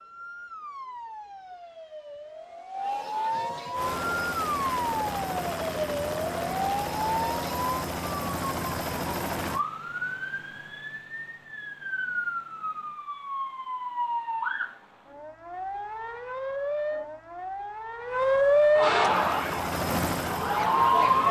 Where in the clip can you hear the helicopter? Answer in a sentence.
You can hear the helicopter from 3.7 to 9.7 s and from 19.1 to 21.2 s.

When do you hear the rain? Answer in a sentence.
You can't hear the rain here.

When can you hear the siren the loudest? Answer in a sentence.
The loudest moment of the siren is at 19 seconds.